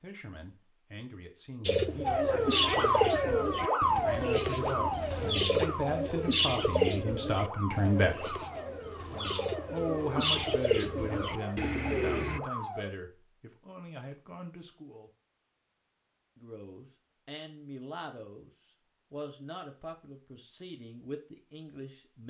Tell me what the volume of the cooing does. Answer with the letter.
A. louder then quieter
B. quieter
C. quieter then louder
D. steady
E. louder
C.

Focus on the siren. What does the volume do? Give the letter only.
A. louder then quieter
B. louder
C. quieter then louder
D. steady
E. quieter
E.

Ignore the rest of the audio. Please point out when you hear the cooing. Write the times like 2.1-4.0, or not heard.
1.6-12.4.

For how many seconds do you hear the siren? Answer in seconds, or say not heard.
11 s.